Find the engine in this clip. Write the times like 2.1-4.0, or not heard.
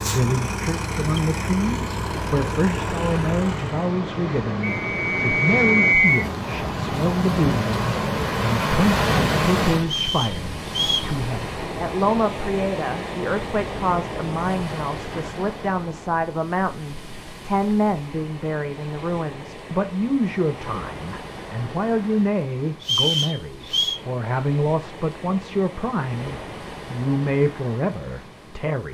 0.0-4.0.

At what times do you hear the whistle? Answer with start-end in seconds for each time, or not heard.
4.6-6.2, 9.9-11.1, 22.8-24.0.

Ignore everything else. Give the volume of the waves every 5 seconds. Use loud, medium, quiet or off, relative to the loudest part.
medium, loud, medium, quiet, quiet, quiet.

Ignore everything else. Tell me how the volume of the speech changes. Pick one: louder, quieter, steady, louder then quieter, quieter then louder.
steady.